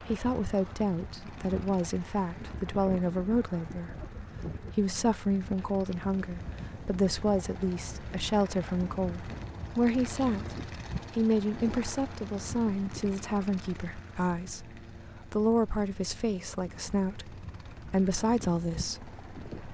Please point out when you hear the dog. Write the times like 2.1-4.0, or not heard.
not heard.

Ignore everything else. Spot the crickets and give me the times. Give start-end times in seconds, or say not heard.
not heard.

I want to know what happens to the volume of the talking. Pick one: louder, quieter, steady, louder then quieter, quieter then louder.
steady.